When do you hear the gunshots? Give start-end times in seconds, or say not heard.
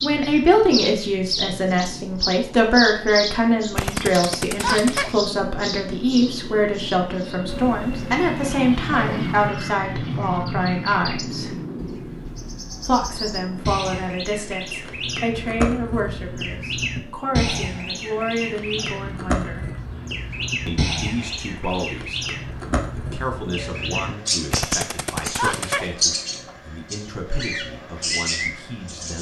3.8-5.2, 24.5-25.9.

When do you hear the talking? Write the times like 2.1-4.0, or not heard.
0.0-11.5, 12.8-19.7, 20.6-22.2, 22.9-29.1.